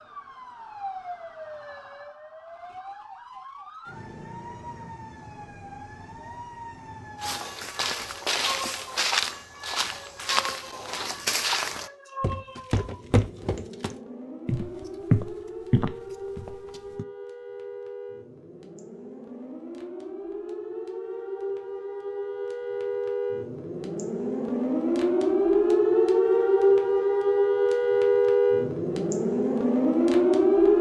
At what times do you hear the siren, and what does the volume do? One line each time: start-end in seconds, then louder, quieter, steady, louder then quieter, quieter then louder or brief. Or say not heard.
0.0-30.7 louder.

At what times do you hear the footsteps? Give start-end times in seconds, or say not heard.
7.2-17.1.